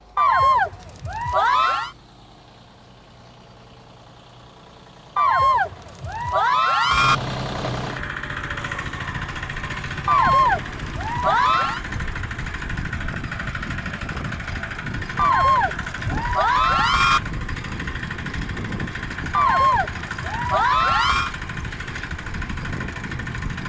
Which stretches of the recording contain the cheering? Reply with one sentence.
The cheering can be heard from 0.1 to 1.9 s, from 5.2 to 7.2 s, from 10.1 to 11.8 s, from 15.2 to 17.2 s and from 19.3 to 21.3 s.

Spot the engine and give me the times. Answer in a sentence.
The engine can be heard from 0.0 to 23.6 s.